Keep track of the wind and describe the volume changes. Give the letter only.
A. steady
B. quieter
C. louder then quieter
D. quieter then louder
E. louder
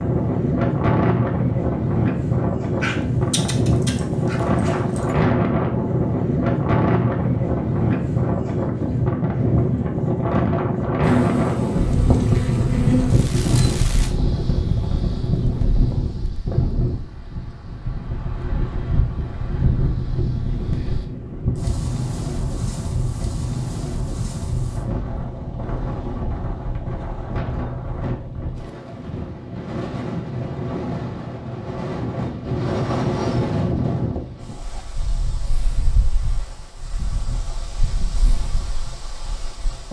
B.